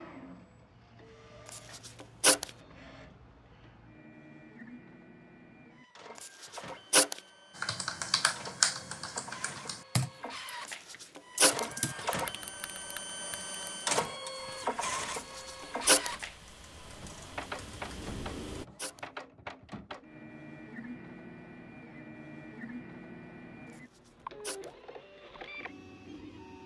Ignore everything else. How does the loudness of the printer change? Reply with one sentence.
The volume of the printer goes up, then down.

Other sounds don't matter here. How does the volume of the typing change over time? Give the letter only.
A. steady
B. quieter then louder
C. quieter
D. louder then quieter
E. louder
B.